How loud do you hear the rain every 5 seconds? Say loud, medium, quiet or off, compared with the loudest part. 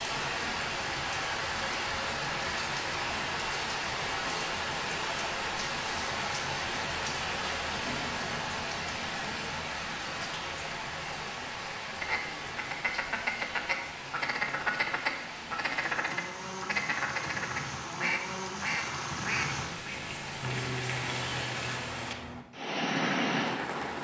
loud, loud, medium, medium, loud.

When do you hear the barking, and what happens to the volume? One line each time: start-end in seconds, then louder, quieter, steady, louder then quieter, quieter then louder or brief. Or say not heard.
not heard.